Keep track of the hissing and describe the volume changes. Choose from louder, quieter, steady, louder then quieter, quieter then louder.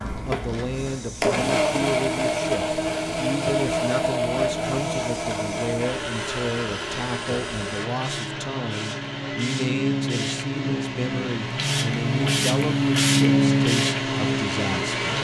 louder.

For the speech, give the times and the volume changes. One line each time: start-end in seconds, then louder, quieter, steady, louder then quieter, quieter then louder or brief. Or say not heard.
0.1-14.9 steady.